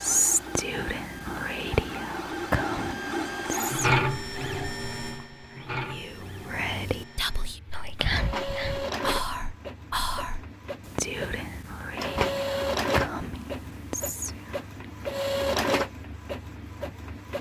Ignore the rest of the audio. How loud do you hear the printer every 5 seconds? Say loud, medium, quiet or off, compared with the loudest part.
loud, medium, loud, loud.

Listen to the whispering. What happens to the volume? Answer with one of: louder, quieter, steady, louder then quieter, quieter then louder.
quieter.